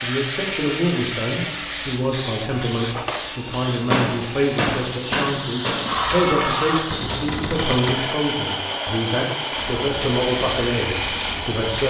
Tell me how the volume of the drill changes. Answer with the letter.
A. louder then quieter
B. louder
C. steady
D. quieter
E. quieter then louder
B.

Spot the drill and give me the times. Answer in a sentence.
You can hear the drill from 0.0 to 11.8 s.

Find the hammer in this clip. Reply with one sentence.
The hammer can be heard from 3.9 to 7.3 s.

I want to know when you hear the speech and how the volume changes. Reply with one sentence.
The speech can be heard from 0.0 to 11.8 s, at a steady volume.